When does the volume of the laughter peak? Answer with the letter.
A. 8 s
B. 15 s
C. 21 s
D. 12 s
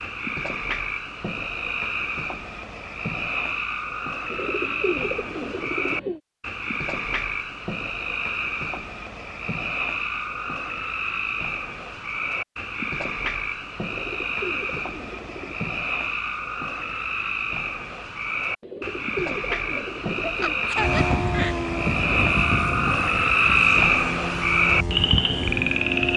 C.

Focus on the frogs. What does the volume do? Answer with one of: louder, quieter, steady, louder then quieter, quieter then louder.
louder.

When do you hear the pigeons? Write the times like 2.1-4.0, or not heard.
4.3-6.2, 13.8-15.7, 18.6-20.7.